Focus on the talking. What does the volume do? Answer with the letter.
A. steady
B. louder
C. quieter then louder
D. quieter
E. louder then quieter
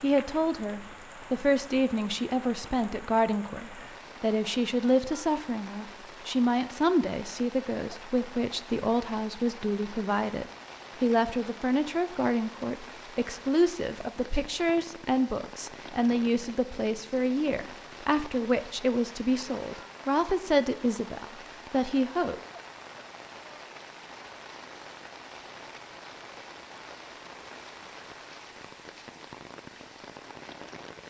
A.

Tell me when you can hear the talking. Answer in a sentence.
The talking can be heard from 0.0 to 22.4 s.